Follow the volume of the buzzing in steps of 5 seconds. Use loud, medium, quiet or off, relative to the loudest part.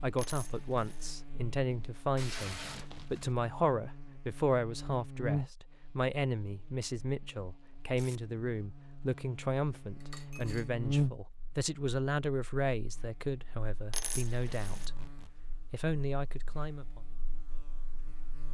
quiet, medium, loud, quiet.